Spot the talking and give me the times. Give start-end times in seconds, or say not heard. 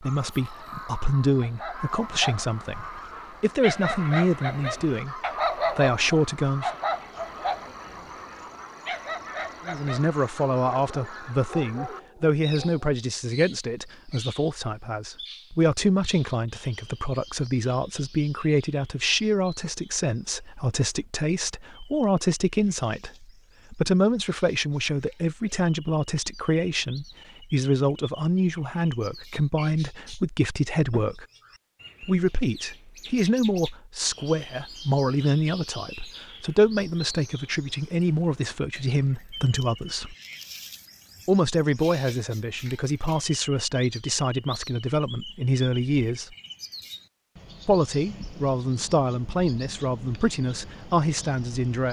0.0-6.7, 9.7-31.2, 32.0-40.1, 41.2-46.4, 47.6-51.8.